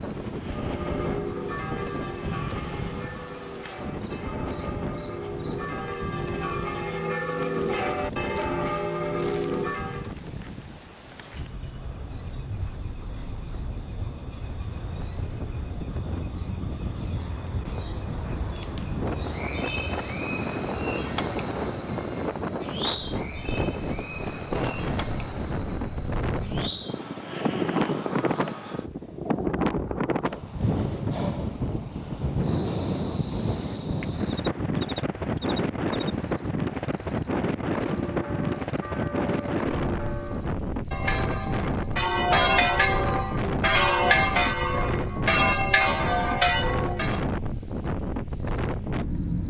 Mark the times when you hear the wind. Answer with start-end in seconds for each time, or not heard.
0.0-49.4.